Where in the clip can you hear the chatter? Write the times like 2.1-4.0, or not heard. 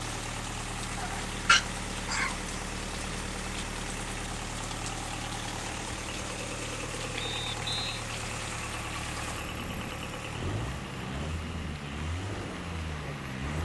not heard.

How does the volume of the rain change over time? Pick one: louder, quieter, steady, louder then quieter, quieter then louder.
steady.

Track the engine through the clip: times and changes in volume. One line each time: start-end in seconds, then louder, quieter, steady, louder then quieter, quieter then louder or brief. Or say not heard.
0.0-13.5 steady.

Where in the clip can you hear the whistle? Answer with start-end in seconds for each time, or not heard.
7.2-8.1.